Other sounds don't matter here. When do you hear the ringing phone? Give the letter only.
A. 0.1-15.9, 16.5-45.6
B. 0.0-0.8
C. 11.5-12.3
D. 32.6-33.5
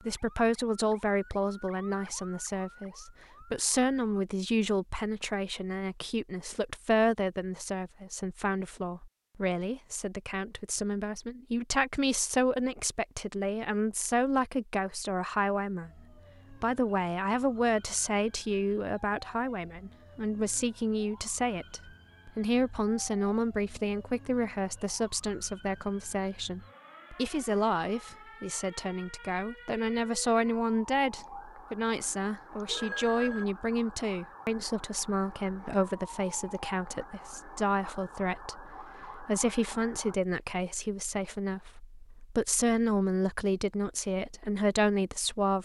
D.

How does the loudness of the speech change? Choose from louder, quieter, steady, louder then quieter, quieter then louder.
steady.